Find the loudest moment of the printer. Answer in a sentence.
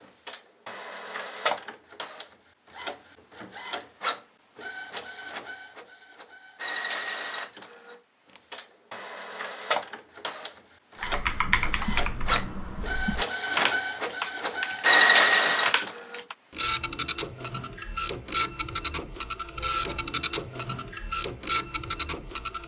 The loudest moment of the printer is at 15 seconds.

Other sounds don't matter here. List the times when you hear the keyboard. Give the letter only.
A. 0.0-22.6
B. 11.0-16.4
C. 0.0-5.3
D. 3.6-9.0
B.